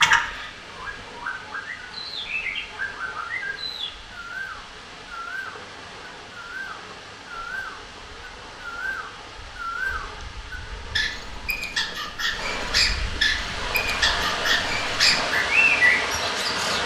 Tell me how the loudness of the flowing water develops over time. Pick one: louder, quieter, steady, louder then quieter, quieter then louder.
louder.